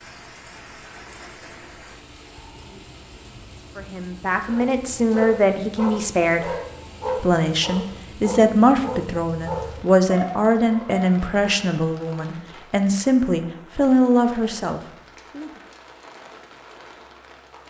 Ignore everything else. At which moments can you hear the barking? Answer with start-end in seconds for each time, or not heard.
4.5-11.1.